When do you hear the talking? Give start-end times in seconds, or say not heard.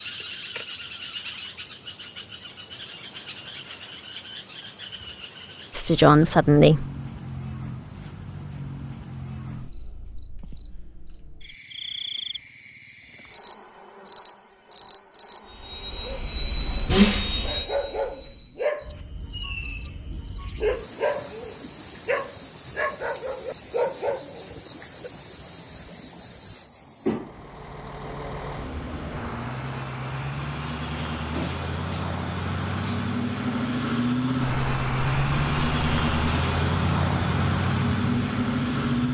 5.7-6.8.